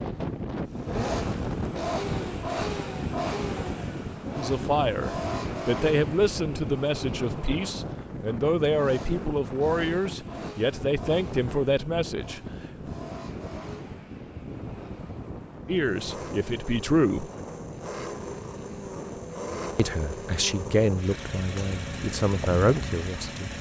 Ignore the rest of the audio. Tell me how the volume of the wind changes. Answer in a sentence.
The loudness of the wind goes down.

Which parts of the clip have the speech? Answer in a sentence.
You can hear the speech from 4.3 to 12.9 s, from 15.7 to 17.3 s and from 19.8 to 23.5 s.